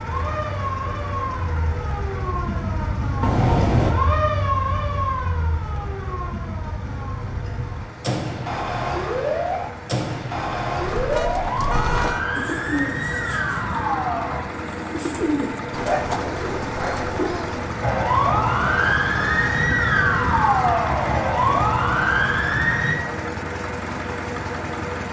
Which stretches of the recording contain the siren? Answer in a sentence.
The siren can be heard from 0.0 to 14.4 s and from 17.8 to 22.9 s.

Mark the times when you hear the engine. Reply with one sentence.
You can hear the engine from 0.0 to 25.0 s.